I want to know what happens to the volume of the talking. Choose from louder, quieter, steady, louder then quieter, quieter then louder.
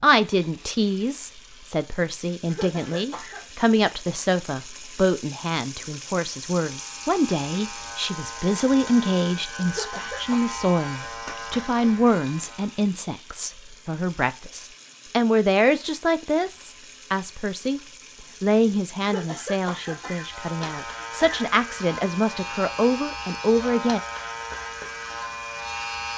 steady.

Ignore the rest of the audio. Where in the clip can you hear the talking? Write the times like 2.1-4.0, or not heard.
0.0-17.8, 18.4-24.0.